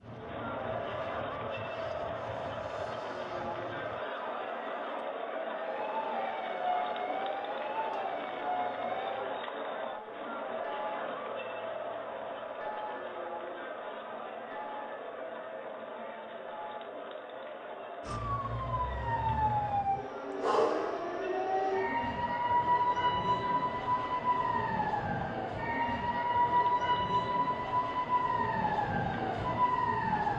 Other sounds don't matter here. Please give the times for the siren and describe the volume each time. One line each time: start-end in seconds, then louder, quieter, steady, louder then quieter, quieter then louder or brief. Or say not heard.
0.0-9.2 louder
18.1-30.3 steady.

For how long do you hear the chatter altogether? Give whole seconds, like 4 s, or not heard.
30 s.